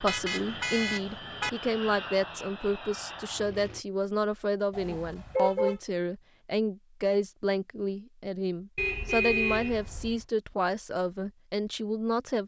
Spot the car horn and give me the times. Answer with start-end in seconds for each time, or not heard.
0.1-1.5, 4.7-5.8, 8.8-10.2.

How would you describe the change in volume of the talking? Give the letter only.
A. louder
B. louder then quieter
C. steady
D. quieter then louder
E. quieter
C.